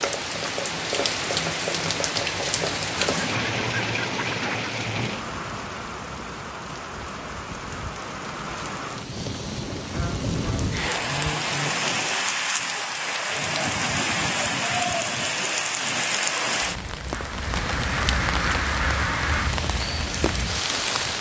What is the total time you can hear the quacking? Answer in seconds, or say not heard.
6 s.